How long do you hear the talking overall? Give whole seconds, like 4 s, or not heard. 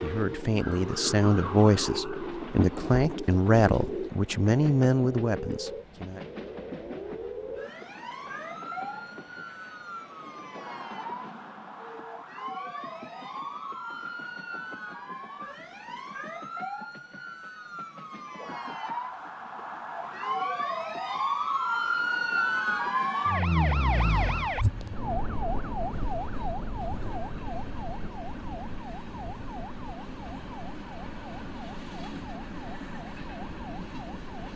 6 s.